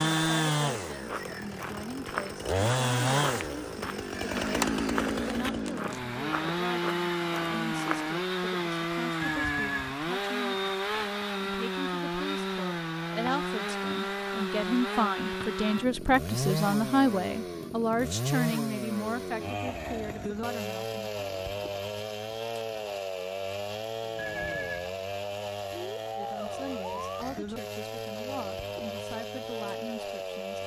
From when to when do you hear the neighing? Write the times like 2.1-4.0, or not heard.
9.2-9.9, 24.1-24.9.